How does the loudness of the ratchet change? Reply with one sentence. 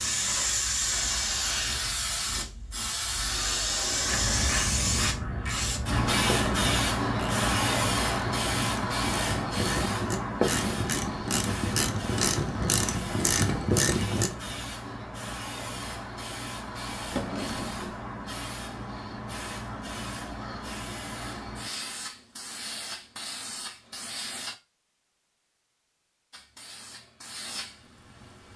The loudness of the ratchet goes up.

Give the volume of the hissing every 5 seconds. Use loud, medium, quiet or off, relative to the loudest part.
loud, loud, medium, medium, medium, quiet.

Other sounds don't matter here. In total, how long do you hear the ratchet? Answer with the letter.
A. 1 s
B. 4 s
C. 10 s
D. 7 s
C.